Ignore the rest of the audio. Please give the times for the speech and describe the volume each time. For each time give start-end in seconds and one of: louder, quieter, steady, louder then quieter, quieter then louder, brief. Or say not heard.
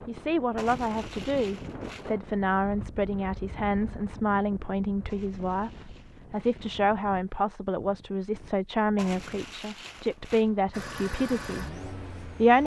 0.1-12.6 steady.